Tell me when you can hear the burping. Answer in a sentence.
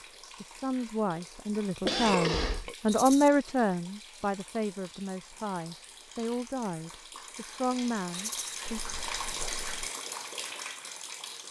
You can hear the burping from 1.8 to 2.8 s and from 8.7 to 9.9 s.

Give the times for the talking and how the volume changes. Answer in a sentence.
The talking can be heard from 0.4 to 8.8 s, getting louder then quieter.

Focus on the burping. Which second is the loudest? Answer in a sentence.
The volume of the burping peaks at 2 seconds.